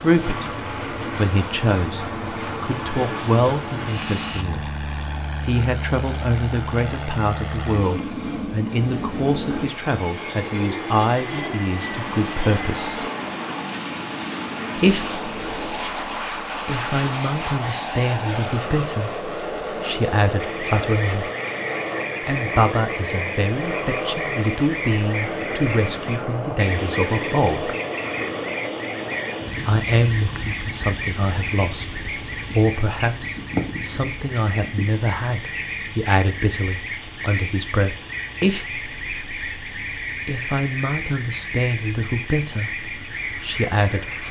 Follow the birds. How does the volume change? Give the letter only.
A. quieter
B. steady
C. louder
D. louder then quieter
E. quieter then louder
B.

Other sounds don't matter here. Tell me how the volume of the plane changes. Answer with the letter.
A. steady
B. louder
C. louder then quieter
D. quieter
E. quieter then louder
D.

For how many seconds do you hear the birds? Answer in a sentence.
The birds can be heard for 24 seconds in total.